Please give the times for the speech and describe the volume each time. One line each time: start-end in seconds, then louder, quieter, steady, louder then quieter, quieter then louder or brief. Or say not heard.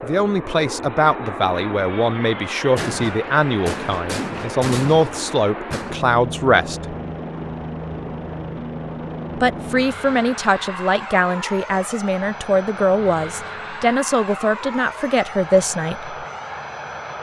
0.0-7.0 steady
9.3-16.1 steady.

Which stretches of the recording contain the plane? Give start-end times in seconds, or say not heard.
0.0-17.1.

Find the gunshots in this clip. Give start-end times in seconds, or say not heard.
2.8-6.0.